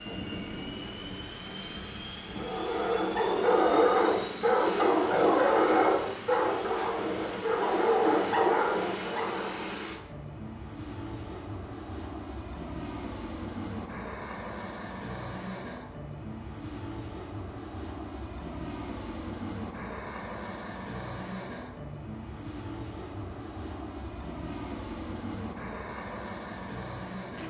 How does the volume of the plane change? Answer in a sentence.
The loudness of the plane stays about the same.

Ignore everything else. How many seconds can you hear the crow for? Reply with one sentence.
You can't hear the crow here.